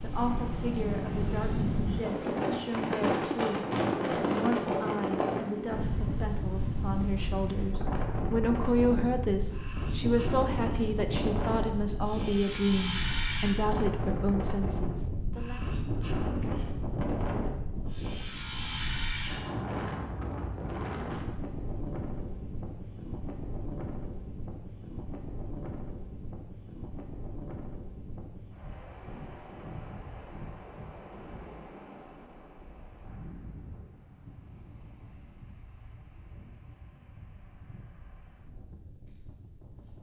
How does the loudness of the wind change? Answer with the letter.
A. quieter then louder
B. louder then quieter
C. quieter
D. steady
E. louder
C.